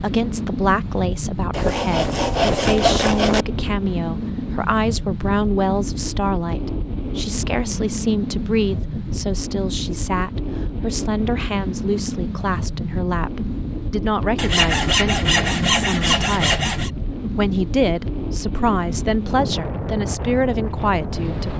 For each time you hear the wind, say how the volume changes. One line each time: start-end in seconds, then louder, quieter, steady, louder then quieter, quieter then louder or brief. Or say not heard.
0.0-21.5 steady.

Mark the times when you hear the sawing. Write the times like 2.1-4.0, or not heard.
1.5-3.5, 14.3-16.9.